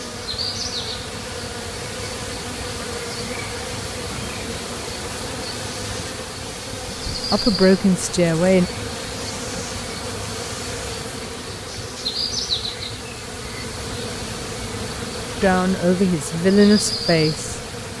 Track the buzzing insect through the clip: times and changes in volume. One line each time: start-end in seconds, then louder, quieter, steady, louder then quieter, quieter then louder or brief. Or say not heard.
0.0-17.9 steady.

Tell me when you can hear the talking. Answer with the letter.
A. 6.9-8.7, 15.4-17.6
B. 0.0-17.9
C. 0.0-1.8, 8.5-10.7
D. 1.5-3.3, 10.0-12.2
A.